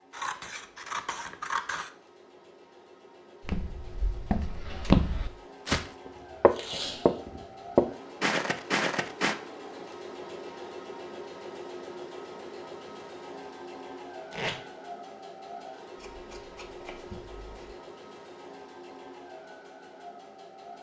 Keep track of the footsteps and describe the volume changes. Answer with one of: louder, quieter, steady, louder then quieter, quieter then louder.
louder then quieter.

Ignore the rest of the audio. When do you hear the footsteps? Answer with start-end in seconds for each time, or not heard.
3.5-9.3.